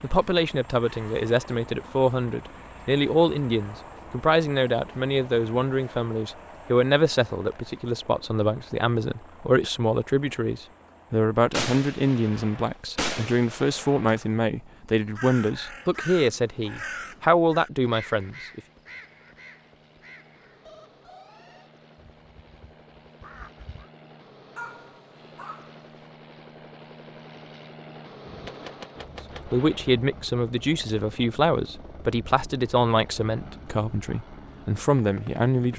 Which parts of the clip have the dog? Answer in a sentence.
You can hear the dog from 24.6 to 25.8 s.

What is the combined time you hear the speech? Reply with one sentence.
The speech can be heard for 25 seconds in total.